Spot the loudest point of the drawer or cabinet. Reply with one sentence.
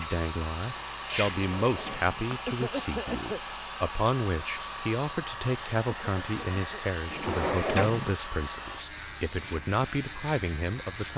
The loudest moment of the drawer or cabinet is at 8 seconds.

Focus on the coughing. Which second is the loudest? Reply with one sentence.
The loudest moment of the coughing is at 3 seconds.